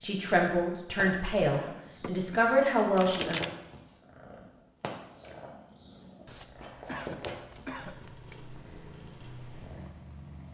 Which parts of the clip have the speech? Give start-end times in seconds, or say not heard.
0.0-3.4.